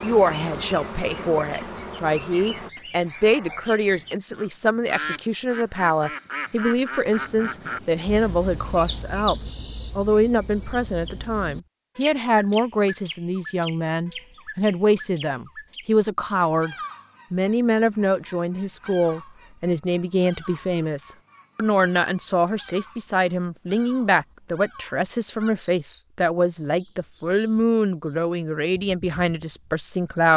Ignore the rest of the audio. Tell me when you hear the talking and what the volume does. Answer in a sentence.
You can hear the talking from 0.0 to 30.3 s, at a steady volume.